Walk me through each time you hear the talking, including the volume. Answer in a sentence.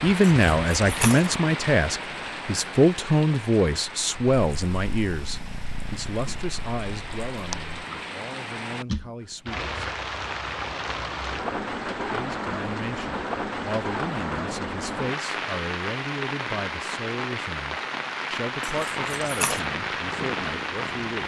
The talking can be heard from 0.0 to 9.8 s, getting quieter; and from 12.1 to 21.2 s, at a steady volume.